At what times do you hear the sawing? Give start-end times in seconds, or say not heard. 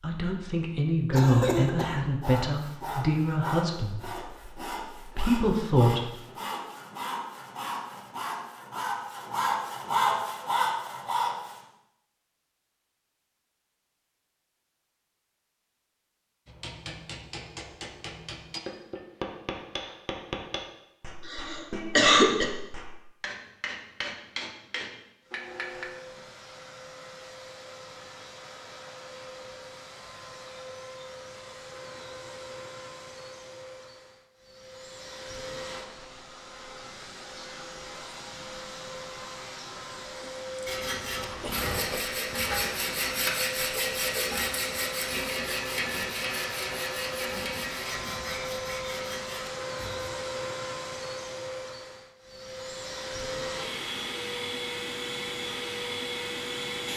2.2-11.7, 40.6-50.1.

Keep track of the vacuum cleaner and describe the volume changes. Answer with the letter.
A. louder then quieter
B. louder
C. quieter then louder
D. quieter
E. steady
B.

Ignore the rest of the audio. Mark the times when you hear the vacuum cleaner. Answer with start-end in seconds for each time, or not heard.
25.2-56.9.